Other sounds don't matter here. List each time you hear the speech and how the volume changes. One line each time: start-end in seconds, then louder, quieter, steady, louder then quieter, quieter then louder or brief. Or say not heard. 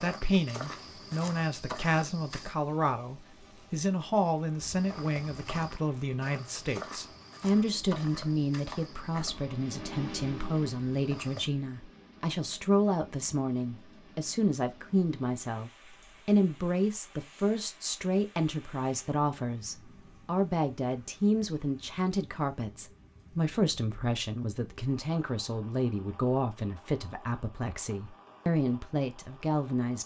0.0-30.0 steady.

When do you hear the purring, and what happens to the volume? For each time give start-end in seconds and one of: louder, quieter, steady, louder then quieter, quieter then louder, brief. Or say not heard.
not heard.